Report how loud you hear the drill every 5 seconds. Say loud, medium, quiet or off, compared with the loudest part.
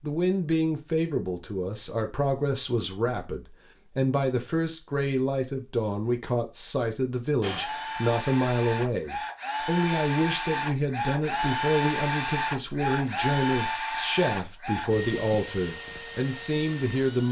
off, loud, loud, medium.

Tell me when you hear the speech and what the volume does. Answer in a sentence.
The speech can be heard from 0.0 to 17.2 s, at a steady volume.